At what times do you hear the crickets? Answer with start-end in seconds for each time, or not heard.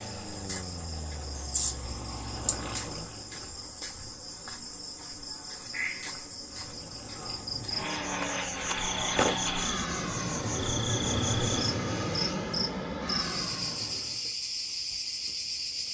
0.0-15.8.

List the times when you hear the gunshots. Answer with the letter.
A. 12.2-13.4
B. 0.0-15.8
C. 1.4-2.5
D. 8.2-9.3
D.